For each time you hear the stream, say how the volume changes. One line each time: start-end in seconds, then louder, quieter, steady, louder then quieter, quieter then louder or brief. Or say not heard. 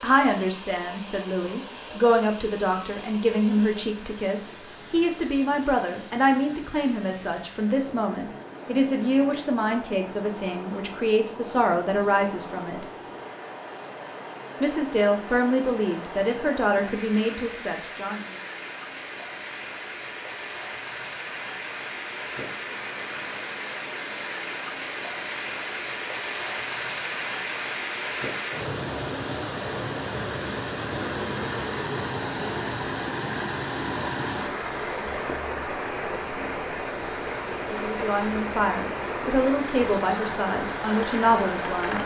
0.0-42.0 louder.